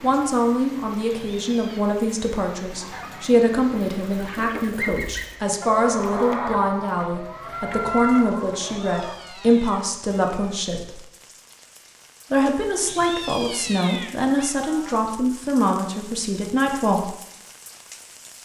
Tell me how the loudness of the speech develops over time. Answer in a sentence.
The loudness of the speech stays about the same.